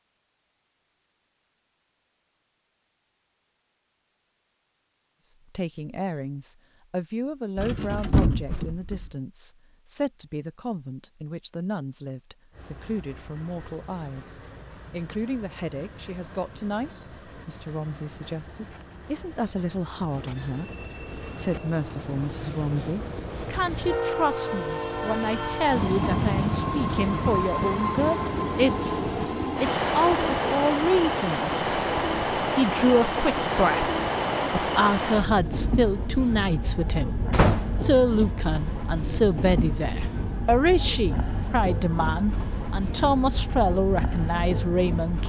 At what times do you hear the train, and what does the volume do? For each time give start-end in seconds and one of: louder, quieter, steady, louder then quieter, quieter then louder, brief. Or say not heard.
12.5-45.2 louder then quieter.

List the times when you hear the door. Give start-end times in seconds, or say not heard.
7.5-9.1, 37.3-37.8.